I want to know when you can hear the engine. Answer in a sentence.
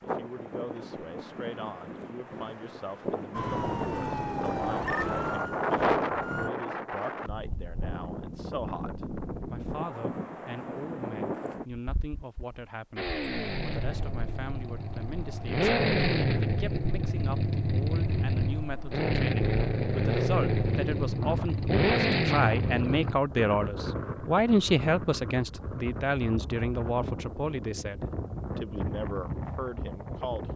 You can hear the engine from 12.9 to 23.1 s.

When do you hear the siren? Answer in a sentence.
You can hear the siren from 3.3 to 6.5 s.